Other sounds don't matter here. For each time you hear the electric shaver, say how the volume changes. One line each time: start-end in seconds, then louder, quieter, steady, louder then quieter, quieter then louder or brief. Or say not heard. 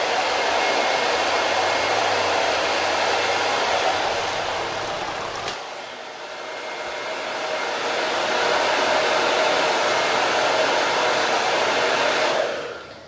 not heard.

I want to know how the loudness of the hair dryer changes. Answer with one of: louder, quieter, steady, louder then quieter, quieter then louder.
quieter then louder.